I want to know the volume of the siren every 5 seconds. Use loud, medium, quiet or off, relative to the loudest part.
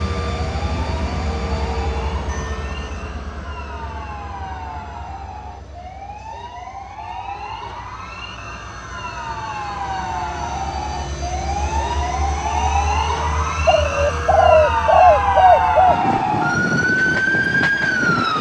quiet, quiet, medium, loud.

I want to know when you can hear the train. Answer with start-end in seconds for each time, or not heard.
0.0-18.3.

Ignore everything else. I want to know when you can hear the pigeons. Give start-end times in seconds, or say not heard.
13.7-15.9.